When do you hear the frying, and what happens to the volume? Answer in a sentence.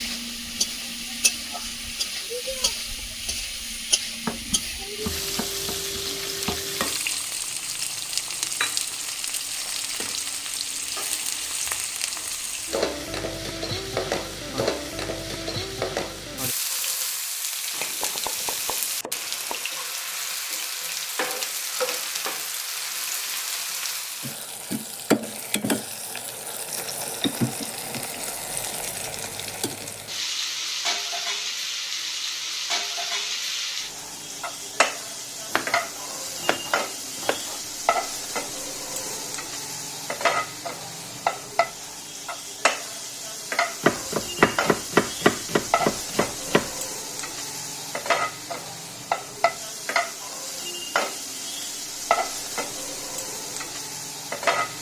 You can hear the frying from 0.0 to 54.7 s, at a steady volume.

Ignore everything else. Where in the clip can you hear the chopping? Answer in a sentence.
The chopping can be heard from 4.2 to 7.0 s, from 17.7 to 19.6 s, from 35.5 to 37.6 s and from 43.8 to 46.7 s.